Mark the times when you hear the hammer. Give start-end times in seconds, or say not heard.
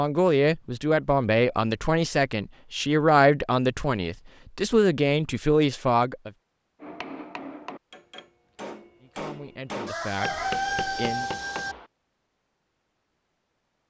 6.8-11.9.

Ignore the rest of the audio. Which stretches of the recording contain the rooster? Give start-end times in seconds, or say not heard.
9.8-11.8.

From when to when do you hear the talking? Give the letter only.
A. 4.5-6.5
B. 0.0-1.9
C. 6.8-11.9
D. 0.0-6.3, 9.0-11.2
D.